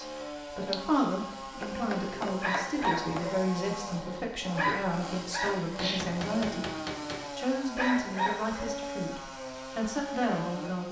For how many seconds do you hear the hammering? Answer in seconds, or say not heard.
3 s.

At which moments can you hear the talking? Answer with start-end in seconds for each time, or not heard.
0.0-6.7, 7.3-10.8.